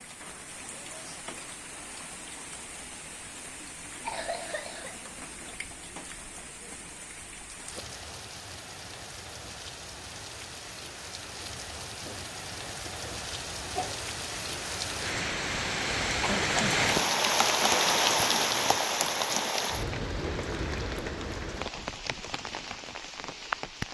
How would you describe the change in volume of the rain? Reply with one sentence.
The volume of the rain goes up, then down.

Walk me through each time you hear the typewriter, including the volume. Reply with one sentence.
You can't hear the typewriter here.